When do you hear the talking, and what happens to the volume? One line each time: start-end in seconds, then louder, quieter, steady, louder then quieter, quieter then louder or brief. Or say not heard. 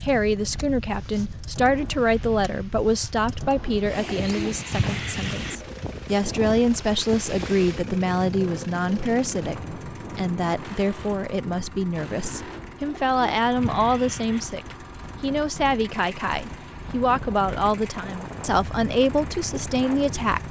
0.0-20.4 steady.